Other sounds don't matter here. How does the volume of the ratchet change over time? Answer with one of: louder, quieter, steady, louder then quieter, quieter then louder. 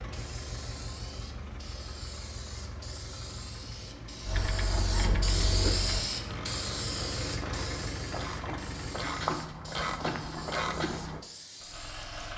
quieter then louder.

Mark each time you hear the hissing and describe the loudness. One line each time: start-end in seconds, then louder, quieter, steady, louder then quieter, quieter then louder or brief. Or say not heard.
0.0-12.3 louder then quieter.